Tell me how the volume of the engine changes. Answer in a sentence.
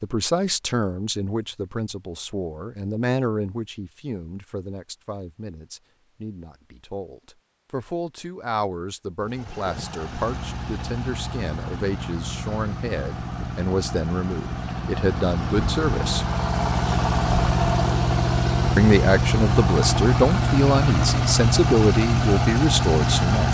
The loudness of the engine goes up.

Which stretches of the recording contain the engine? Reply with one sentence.
You can hear the engine from 9.2 to 23.4 s.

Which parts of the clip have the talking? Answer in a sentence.
You can hear the talking from 0.0 to 16.2 s and from 18.8 to 23.4 s.